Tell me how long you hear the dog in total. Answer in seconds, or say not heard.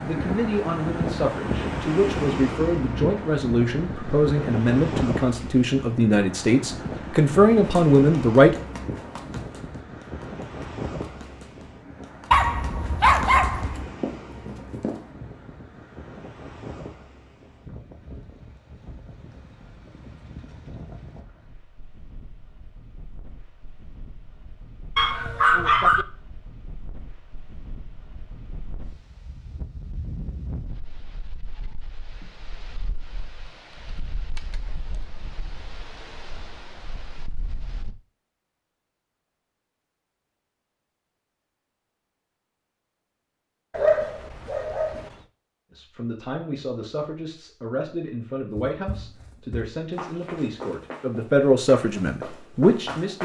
4 s.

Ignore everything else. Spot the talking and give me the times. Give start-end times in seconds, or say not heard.
0.0-8.6, 45.7-53.2.